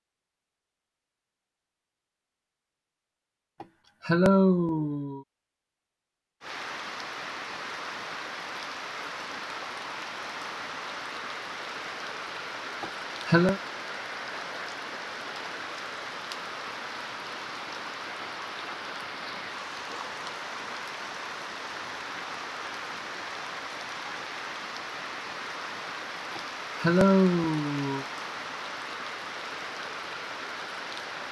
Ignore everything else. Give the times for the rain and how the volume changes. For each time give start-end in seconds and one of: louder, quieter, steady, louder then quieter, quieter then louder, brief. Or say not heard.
6.4-31.2 steady.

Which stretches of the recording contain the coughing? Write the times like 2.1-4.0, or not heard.
3.6-5.2, 12.8-13.6, 26.4-28.1.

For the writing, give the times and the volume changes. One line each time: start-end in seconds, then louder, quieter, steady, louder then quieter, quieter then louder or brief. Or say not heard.
not heard.